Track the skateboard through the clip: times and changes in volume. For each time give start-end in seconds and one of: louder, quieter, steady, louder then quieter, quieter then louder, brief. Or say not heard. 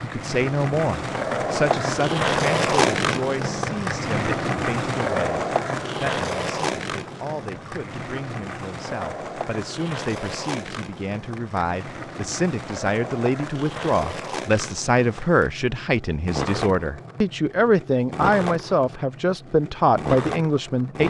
0.0-21.0 quieter.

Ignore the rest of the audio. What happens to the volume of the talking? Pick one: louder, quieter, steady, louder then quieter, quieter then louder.
quieter then louder.